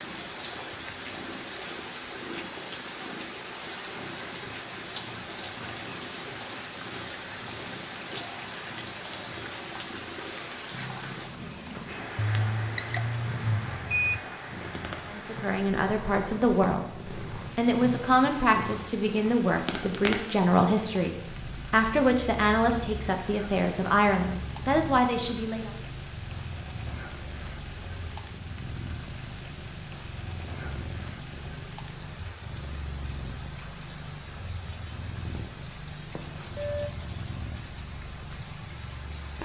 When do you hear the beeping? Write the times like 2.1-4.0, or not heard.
12.2-14.2, 36.1-36.9.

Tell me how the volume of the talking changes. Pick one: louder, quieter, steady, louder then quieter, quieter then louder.
steady.